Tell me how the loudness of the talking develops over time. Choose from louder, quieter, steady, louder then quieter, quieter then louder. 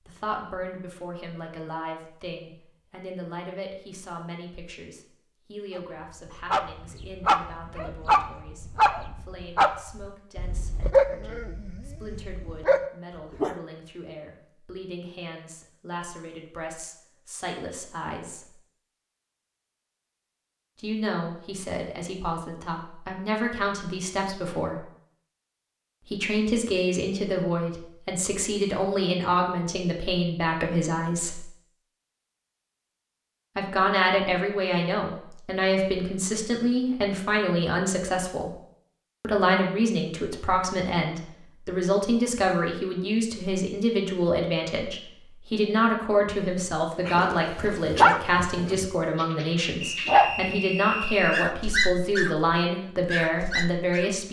louder.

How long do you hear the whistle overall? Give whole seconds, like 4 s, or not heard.
2 s.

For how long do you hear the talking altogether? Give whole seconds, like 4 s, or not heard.
48 s.